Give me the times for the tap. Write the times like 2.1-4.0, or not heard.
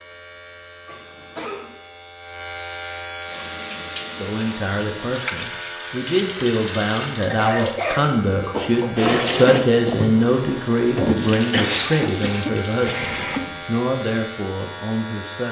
3.2-13.7.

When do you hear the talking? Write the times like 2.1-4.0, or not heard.
4.2-15.4.